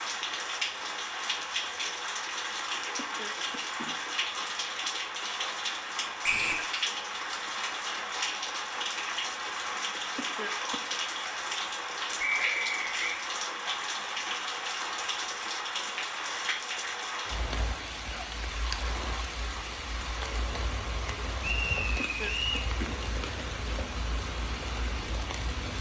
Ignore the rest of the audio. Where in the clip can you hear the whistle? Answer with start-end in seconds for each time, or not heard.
6.2-6.7, 12.2-13.2, 21.4-22.7.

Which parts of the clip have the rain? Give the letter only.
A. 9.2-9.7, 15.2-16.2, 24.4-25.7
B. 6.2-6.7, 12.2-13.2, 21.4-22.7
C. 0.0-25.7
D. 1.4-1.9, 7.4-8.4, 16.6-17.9
C.